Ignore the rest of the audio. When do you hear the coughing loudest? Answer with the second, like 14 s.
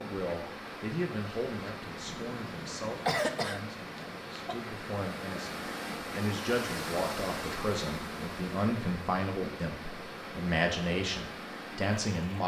3 s.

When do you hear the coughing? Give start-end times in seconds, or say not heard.
2.0-4.6.